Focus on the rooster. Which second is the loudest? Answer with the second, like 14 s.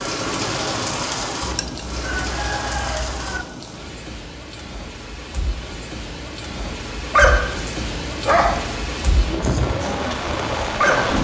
3 s.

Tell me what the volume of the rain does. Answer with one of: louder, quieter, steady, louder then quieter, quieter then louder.
quieter then louder.